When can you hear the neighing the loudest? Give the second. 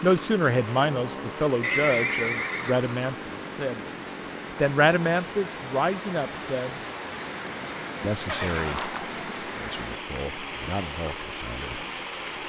2 s.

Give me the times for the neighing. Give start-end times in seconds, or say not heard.
1.6-2.9, 8.2-9.1.